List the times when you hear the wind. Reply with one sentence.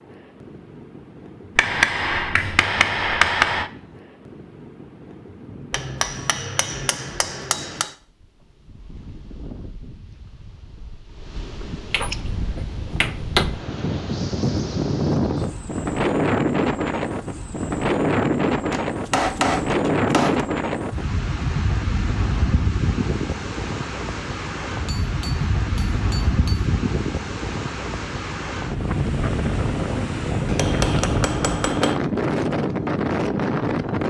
You can hear the wind from 0.0 to 34.0 s.